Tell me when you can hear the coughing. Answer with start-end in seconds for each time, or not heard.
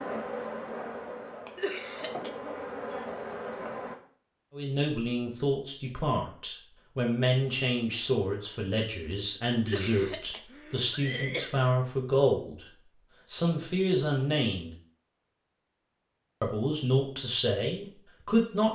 1.6-2.6, 9.7-11.7.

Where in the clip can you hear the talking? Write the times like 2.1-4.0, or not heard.
4.5-12.7, 13.3-14.7, 16.4-18.6.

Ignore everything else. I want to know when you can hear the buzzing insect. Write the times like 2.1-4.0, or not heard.
0.0-4.0.